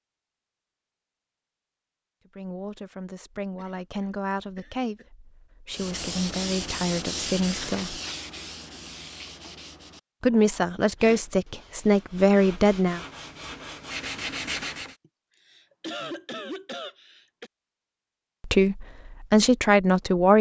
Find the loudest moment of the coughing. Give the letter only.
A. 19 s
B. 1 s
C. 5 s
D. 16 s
D.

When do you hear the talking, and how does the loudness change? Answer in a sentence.
The talking can be heard from 2.4 to 8.0 s, getting louder; briefly from 10.2 to 13.0 s; and briefly from 18.4 to 20.3 s.